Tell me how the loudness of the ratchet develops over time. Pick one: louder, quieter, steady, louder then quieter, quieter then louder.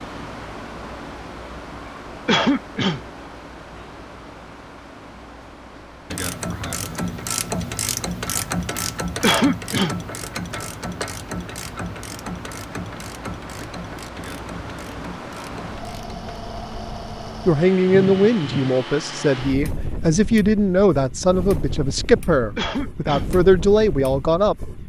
quieter.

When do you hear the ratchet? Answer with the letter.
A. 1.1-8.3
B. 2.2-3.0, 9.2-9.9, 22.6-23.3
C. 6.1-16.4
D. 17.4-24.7
C.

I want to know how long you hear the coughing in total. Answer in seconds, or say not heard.
2 s.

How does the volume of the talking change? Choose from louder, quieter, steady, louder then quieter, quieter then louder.
steady.